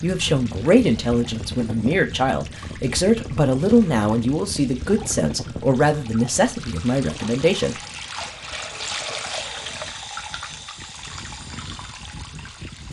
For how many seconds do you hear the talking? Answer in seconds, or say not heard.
8 s.